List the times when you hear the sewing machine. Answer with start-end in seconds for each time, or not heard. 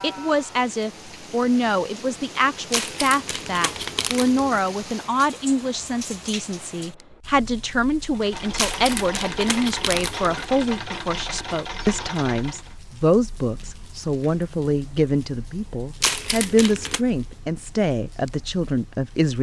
8.0-12.8.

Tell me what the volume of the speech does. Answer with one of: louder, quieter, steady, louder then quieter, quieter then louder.
steady.